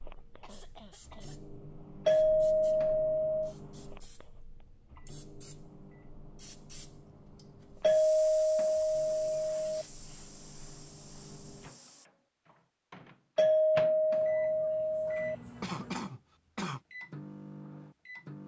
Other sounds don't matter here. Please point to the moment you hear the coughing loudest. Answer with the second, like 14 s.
16 s.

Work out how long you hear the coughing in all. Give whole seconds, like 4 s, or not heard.
3 s.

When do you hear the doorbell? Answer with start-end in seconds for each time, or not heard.
2.0-3.4, 7.8-9.8, 13.3-15.3.